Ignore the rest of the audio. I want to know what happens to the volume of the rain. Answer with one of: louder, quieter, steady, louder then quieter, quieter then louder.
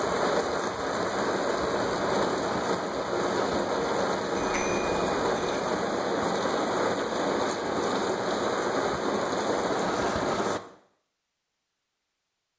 steady.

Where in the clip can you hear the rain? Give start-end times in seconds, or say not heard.
0.0-10.6.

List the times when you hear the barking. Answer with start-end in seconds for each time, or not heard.
not heard.